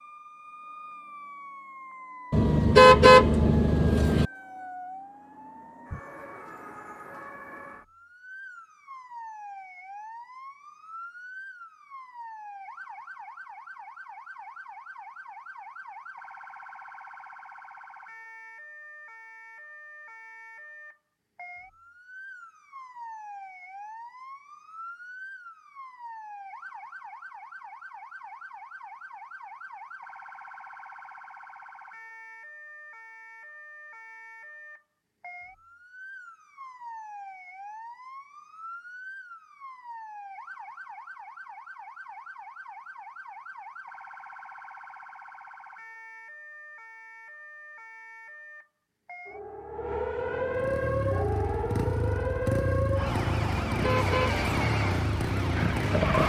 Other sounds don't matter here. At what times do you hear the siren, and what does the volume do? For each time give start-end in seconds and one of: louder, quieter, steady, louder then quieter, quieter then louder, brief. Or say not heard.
0.0-56.2 louder.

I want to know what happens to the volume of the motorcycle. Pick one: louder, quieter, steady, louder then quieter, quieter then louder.
steady.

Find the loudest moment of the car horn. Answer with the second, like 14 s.
3 s.